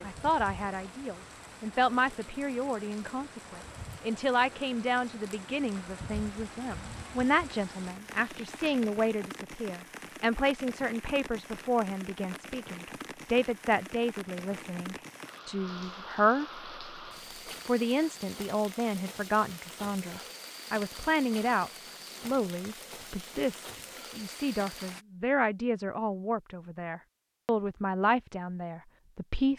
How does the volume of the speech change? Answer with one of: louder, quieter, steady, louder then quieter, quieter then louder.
steady.